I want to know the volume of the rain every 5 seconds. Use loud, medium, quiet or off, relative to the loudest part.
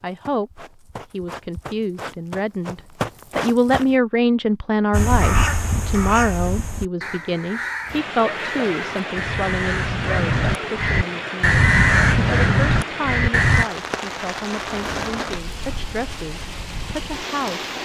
off, loud, loud, loud.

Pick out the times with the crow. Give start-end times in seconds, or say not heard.
4.9-13.7.